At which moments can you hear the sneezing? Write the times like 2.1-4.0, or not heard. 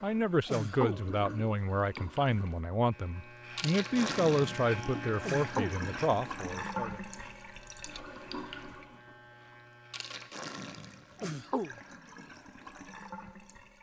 0.5-1.1, 5.2-5.8, 11.2-11.8.